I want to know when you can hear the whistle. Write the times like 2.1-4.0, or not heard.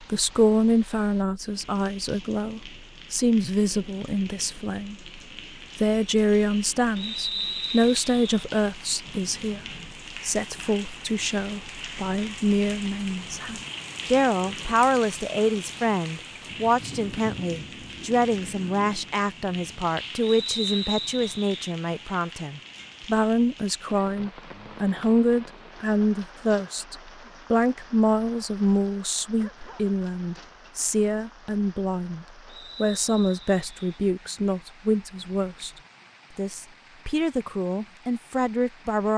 7.0-8.4, 20.2-21.6, 32.5-34.0.